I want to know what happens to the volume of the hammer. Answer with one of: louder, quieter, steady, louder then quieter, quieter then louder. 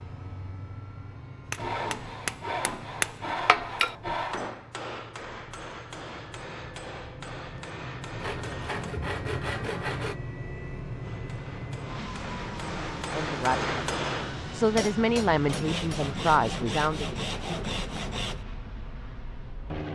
quieter then louder.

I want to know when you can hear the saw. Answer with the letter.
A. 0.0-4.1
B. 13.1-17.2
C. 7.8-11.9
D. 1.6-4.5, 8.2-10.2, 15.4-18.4
D.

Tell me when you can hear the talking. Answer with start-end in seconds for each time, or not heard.
13.1-17.2.